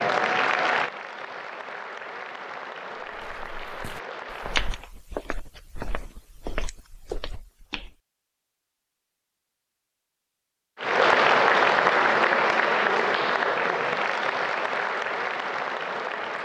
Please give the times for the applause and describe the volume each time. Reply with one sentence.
You can hear the applause from 0.0 to 4.8 s, getting quieter; and from 10.8 to 16.3 s, getting quieter.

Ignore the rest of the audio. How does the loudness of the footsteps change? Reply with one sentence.
The loudness of the footsteps goes up, then down.